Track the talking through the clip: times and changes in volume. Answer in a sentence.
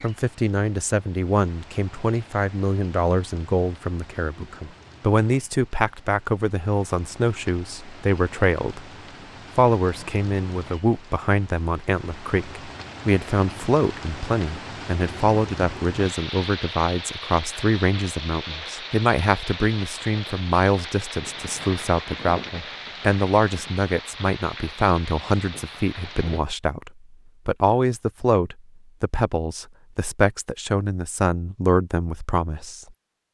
You can hear the talking from 0.0 to 8.8 s, at a steady volume; and from 9.6 to 32.9 s, at a steady volume.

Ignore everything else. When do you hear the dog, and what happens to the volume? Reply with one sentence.
The dog can't be heard in this clip.